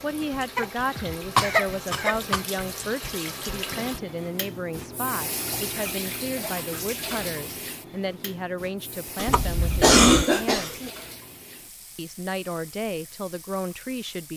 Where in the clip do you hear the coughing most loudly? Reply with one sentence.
The loudest moment of the coughing is at 10 seconds.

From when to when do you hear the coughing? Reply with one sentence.
The coughing can be heard from 0.6 to 2.5 s and from 9.2 to 10.9 s.